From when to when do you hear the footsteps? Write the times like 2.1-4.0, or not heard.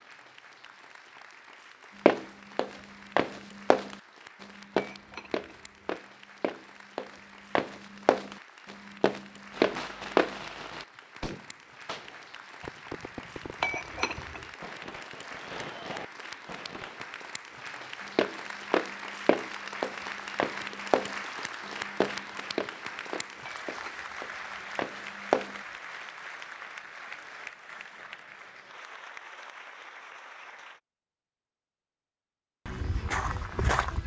2.0-10.3, 18.1-25.6, 32.6-34.0.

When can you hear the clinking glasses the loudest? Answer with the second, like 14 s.
14 s.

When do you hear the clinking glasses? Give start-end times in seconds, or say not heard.
4.7-6.0, 13.6-14.5, 23.4-24.6.